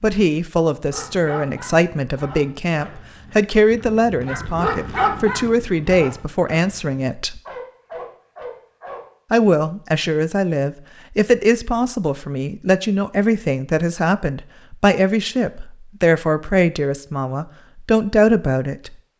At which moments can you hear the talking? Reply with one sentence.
The talking can be heard from 0.0 to 7.4 s and from 9.3 to 18.9 s.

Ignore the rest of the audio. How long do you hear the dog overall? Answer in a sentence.
You can hear the dog for 8 seconds altogether.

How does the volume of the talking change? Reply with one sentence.
The volume of the talking stays about the same.